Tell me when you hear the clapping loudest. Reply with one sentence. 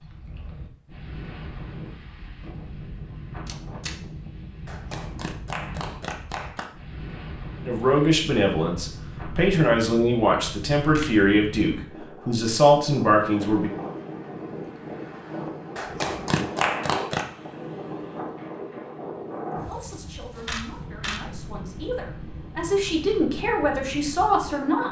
The volume of the clapping peaks at 17 seconds.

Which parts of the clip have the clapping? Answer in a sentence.
The clapping can be heard from 4.7 to 6.7 s and from 15.8 to 17.2 s.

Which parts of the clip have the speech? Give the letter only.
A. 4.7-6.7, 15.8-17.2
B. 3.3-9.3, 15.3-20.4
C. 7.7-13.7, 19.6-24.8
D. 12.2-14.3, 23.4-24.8
C.